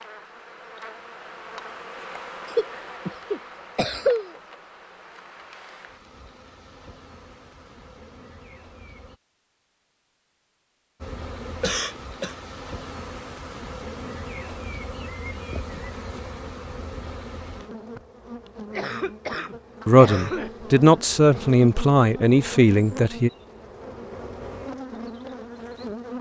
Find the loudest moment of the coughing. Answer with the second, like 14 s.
4 s.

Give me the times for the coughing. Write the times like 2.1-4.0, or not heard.
2.5-4.3, 11.4-12.3, 18.7-20.5.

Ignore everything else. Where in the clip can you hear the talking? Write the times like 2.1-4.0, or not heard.
19.9-23.3.